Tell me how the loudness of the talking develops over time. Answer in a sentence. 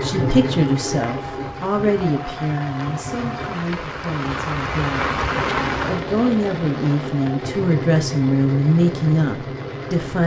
The loudness of the talking goes down, then up.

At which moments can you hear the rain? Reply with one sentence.
You can hear the rain from 0.0 to 10.2 s.